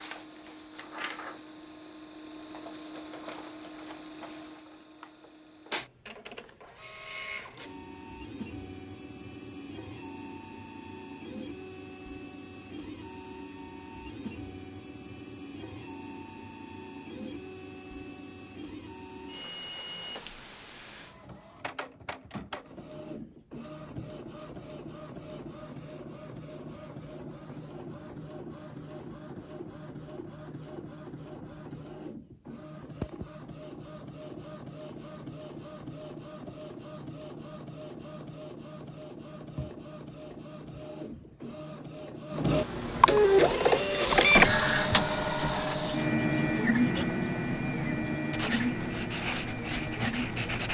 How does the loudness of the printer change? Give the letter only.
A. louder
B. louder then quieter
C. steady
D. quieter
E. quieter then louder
A.